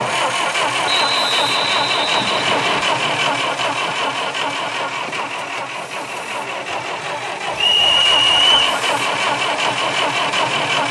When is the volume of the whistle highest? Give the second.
8 s.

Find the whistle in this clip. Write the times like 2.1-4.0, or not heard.
0.8-2.9, 7.5-8.6.